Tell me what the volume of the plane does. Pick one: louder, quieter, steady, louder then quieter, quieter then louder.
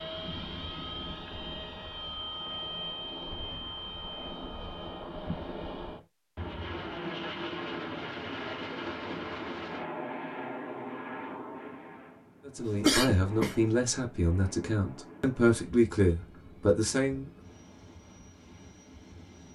quieter.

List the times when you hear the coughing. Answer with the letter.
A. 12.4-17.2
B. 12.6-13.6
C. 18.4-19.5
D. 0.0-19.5
B.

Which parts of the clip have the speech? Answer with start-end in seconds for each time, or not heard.
12.4-17.2.